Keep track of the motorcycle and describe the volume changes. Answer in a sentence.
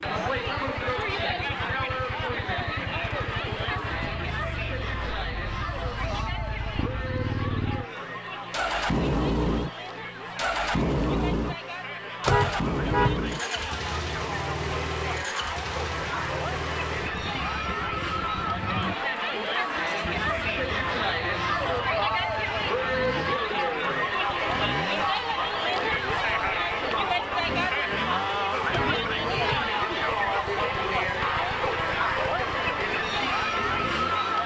The volume of the motorcycle goes up, then down.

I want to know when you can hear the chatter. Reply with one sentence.
You can hear the chatter from 0.0 to 34.4 s.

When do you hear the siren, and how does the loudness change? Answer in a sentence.
The siren can't be heard in this clip.